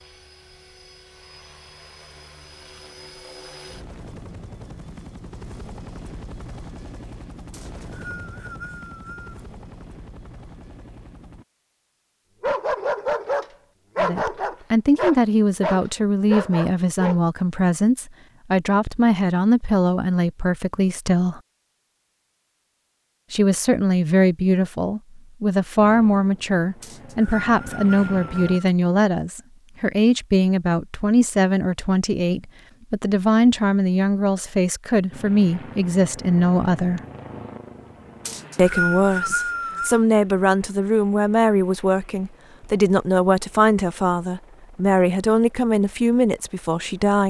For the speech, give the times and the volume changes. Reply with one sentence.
The speech can be heard from 13.9 to 21.4 s, at a steady volume; from 23.3 to 37.0 s, at a steady volume; and from 38.5 to 47.2 s, at a steady volume.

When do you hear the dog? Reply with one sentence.
You can hear the dog from 12.4 to 17.2 s.